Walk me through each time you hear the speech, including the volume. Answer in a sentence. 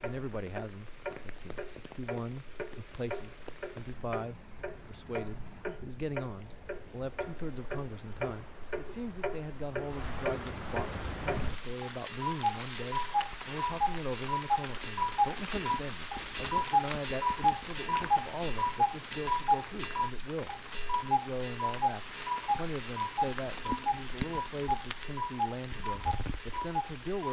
The speech can be heard from 0.0 to 27.2 s, at a steady volume.